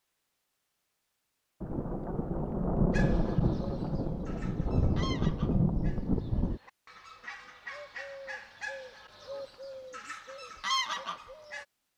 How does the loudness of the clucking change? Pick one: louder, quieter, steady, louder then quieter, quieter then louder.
louder.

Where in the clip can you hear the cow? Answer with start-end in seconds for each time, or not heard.
not heard.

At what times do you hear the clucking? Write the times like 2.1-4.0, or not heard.
2.9-11.7.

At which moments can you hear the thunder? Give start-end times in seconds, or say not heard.
1.6-6.6.